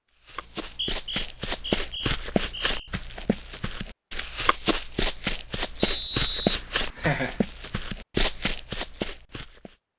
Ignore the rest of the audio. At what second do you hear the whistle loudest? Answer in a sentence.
The loudest moment of the whistle is at 6 seconds.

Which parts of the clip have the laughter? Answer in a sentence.
You can hear the laughter from 6.5 to 7.4 s.